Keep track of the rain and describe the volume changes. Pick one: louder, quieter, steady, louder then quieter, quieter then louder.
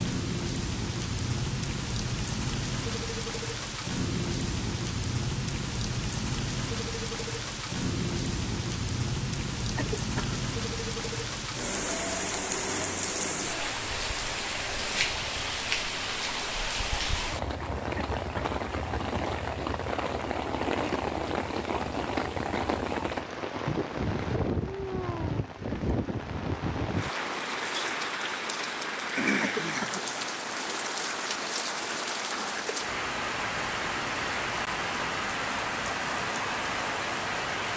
steady.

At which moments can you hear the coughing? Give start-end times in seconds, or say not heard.
9.8-10.4, 17.9-18.6, 29.4-30.1.